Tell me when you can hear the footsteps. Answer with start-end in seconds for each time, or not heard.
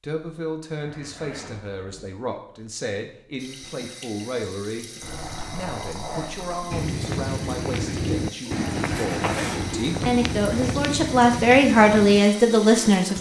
6.7-12.2.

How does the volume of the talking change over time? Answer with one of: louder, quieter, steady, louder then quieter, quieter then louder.
louder.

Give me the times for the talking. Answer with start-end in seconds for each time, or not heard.
0.0-4.9, 5.5-13.1.